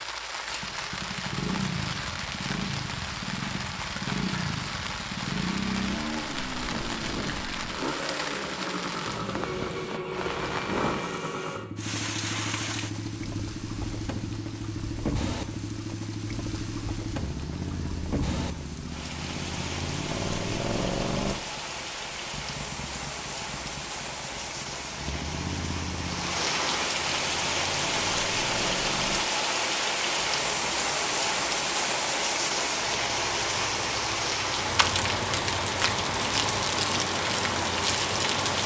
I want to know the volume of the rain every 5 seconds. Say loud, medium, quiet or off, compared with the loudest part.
medium, medium, medium, medium, medium, loud, loud, loud.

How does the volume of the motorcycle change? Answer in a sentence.
The volume of the motorcycle goes down.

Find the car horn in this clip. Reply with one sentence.
The car horn can be heard from 9.3 to 11.7 s.